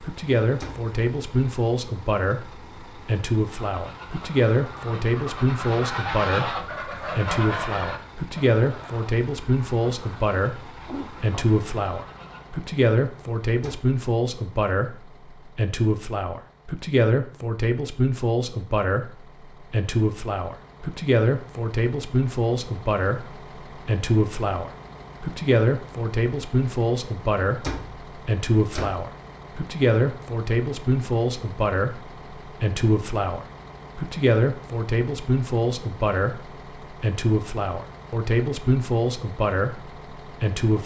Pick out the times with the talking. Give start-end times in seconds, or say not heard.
0.0-40.8.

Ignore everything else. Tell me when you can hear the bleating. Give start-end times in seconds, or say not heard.
not heard.